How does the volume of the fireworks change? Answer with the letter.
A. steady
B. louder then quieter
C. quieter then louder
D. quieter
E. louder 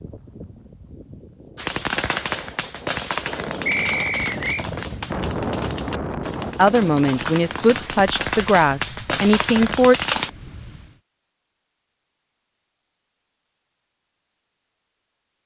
C.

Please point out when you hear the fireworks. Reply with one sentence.
The fireworks can be heard from 1.6 to 10.3 s.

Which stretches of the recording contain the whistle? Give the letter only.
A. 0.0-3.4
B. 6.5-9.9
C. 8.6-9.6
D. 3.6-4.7
D.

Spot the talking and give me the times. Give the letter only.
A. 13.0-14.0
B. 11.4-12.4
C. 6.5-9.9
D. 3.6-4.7
C.